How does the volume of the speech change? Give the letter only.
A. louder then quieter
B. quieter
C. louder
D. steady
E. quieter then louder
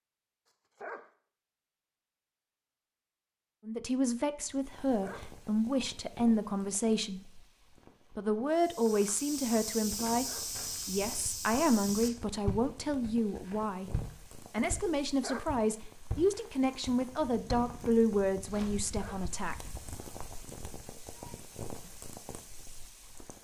D.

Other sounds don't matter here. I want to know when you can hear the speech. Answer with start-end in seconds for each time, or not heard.
3.6-7.2, 8.2-13.9, 14.5-19.6.